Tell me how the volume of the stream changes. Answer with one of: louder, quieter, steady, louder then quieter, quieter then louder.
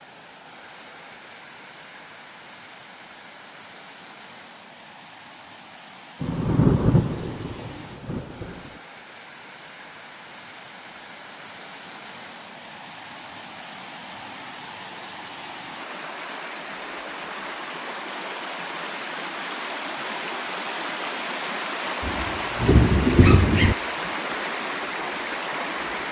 louder.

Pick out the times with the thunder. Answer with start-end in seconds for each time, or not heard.
6.2-8.7, 22.0-23.8.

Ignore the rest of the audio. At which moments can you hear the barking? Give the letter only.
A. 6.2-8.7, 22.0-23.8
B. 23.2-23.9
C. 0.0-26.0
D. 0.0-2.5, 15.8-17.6
B.